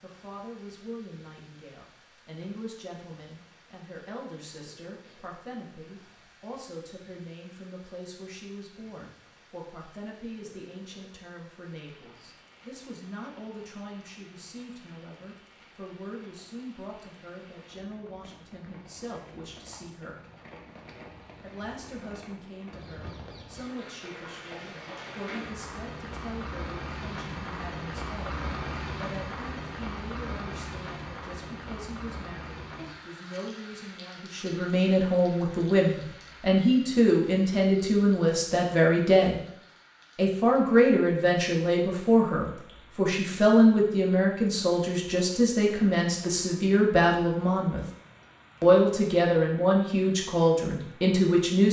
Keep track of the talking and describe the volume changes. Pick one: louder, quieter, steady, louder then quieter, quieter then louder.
louder.